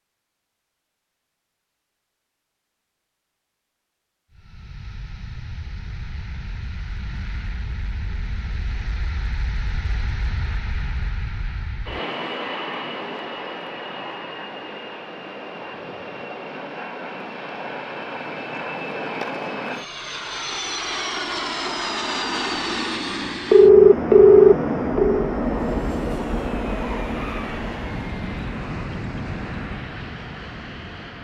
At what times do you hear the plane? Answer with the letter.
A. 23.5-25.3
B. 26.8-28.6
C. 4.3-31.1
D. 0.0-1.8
C.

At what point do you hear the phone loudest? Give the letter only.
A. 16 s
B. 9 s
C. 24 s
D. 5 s
C.